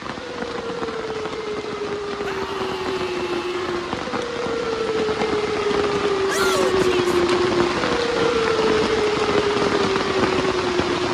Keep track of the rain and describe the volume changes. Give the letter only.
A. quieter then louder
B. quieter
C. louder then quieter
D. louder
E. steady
D.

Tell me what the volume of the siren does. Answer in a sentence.
The loudness of the siren goes up.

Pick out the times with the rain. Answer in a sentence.
The rain can be heard from 0.0 to 11.0 s.